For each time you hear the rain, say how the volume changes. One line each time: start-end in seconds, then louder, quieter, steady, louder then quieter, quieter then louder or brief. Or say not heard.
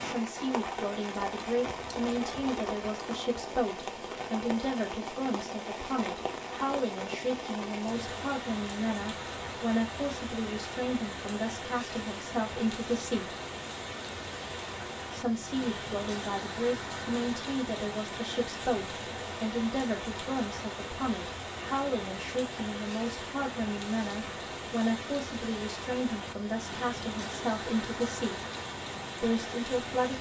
0.0-30.1 steady.